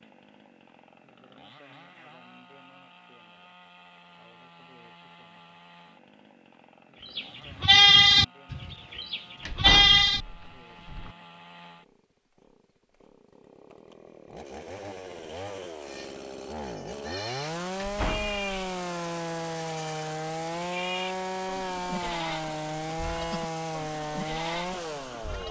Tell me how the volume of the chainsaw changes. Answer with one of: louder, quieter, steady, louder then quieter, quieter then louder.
louder.